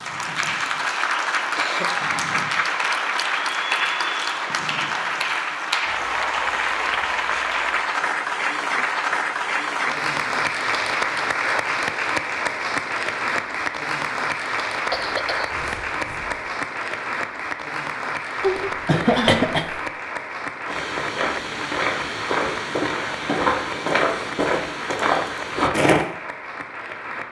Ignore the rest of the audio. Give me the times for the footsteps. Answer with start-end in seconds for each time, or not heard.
20.6-26.1.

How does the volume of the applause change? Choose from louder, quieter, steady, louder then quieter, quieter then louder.
quieter.